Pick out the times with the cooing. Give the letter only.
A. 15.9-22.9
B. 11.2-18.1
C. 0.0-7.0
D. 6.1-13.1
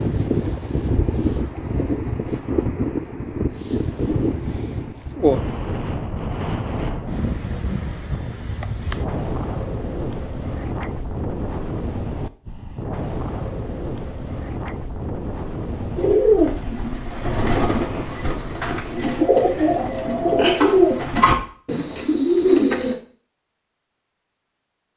A.